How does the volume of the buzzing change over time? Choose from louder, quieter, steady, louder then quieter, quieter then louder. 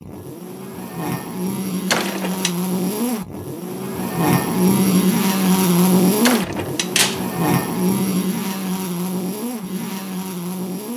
louder then quieter.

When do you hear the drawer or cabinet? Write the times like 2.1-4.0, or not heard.
1.9-2.5, 6.2-7.2.